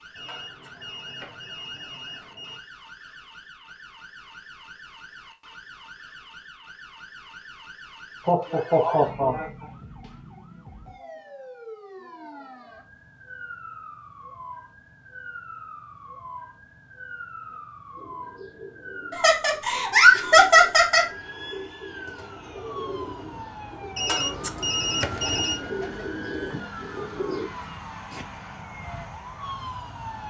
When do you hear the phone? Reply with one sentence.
You can hear the phone from 0.1 to 2.6 s and from 23.9 to 25.6 s.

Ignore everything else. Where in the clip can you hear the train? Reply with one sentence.
The train can't be heard in this clip.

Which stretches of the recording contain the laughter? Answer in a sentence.
You can hear the laughter from 8.2 to 9.4 s and from 19.1 to 21.1 s.